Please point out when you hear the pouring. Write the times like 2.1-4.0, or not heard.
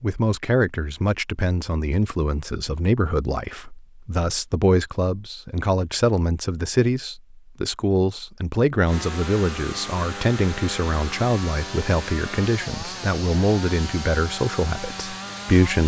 not heard.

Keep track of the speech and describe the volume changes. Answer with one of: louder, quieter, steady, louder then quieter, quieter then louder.
steady.